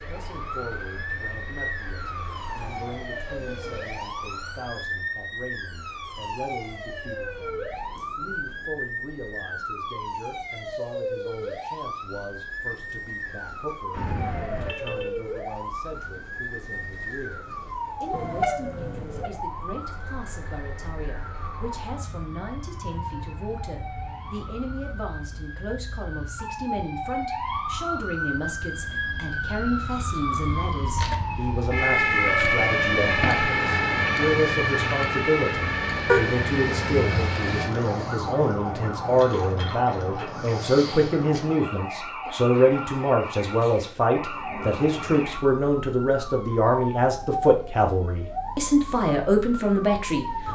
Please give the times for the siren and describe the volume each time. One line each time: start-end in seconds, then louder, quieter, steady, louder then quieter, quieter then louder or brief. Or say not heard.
0.0-50.4 louder then quieter.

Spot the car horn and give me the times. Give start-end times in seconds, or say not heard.
13.9-15.1, 18.1-19.3, 36.0-37.3.